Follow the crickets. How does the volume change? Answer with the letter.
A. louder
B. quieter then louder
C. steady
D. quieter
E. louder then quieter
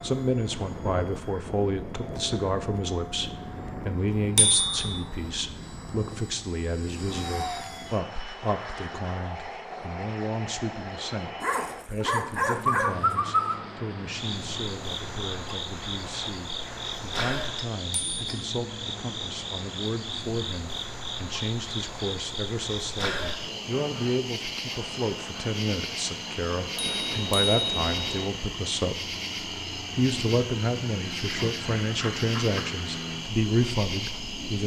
C.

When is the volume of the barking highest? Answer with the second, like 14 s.
13 s.